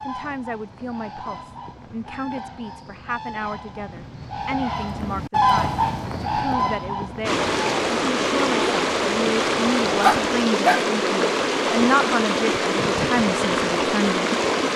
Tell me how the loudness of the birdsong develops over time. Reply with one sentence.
The loudness of the birdsong goes up, then down.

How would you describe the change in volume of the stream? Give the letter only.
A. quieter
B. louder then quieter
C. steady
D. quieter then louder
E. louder
C.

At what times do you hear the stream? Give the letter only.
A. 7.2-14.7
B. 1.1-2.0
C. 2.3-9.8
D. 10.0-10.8
A.